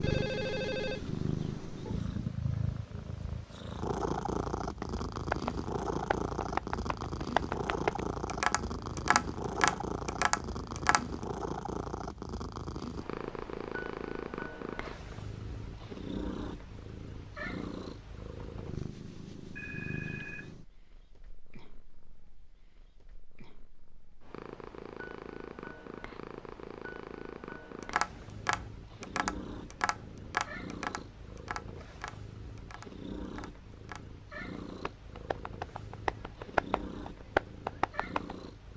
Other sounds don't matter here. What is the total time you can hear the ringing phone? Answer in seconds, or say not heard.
2 s.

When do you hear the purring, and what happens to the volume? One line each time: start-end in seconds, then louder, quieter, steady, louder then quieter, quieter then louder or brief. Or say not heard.
0.0-38.7 quieter.